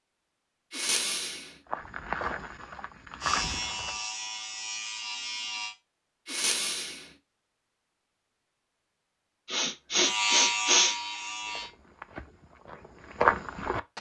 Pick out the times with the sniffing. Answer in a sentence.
The sniffing can be heard from 0.7 to 1.5 s, from 6.2 to 7.0 s and from 9.4 to 10.9 s.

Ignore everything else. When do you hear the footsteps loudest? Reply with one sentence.
The loudest moment of the footsteps is at 13 seconds.